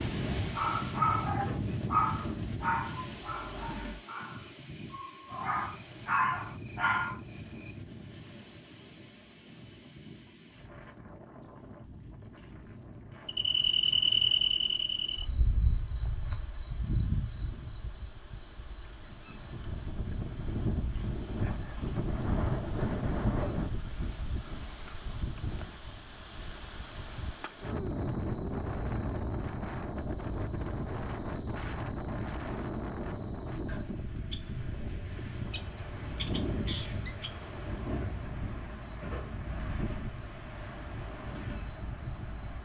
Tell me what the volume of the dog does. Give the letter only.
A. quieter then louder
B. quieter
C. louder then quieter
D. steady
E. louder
A.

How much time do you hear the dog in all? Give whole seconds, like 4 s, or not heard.
7 s.